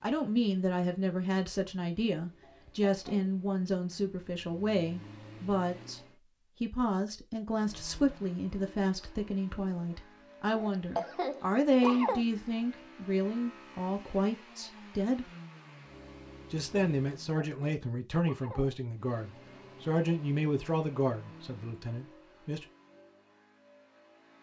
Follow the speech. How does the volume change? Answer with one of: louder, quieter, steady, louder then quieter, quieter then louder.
steady.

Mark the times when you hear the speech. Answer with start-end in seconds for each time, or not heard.
0.0-15.3, 16.5-22.6.